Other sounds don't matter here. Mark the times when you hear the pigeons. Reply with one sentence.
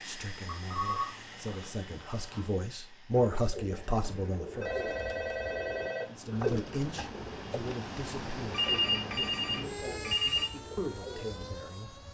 The pigeons can be heard from 3.1 to 11.4 s.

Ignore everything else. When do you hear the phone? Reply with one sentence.
The phone can be heard from 0.5 to 2.5 s, from 4.6 to 6.5 s and from 8.5 to 10.5 s.